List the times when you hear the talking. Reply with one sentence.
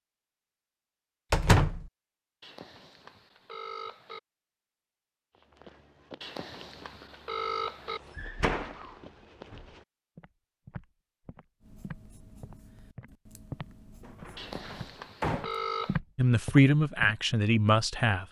The talking can be heard from 16.1 to 18.2 s.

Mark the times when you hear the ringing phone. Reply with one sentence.
You can hear the ringing phone from 2.4 to 4.2 s, from 6.2 to 8.0 s and from 14.3 to 16.0 s.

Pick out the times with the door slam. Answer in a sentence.
The door slam can be heard from 1.3 to 1.9 s, from 8.2 to 9.7 s and from 14.0 to 15.5 s.